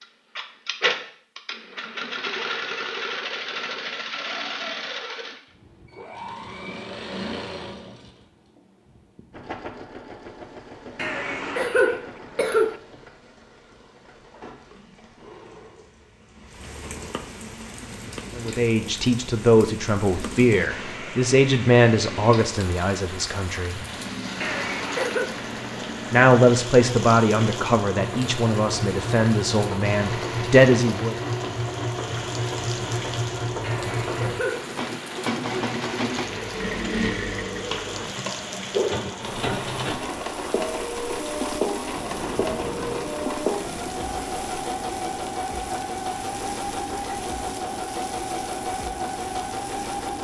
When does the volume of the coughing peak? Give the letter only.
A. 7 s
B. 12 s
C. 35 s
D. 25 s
B.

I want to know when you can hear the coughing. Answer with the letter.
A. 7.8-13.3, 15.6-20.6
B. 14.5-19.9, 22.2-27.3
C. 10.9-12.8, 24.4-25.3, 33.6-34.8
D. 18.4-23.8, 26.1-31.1
C.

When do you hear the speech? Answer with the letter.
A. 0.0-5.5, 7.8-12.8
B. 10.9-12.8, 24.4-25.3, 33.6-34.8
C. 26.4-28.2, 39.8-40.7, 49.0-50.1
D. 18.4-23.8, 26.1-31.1
D.